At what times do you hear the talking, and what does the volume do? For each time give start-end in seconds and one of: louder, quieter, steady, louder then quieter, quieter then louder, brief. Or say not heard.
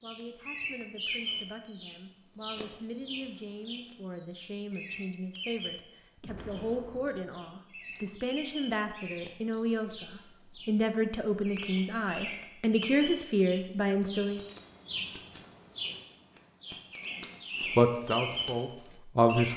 0.0-14.4 louder
17.8-19.5 brief.